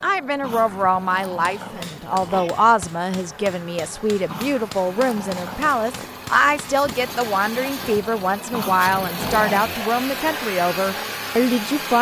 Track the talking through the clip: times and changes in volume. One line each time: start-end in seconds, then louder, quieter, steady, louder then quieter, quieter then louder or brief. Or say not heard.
0.0-11.9 steady.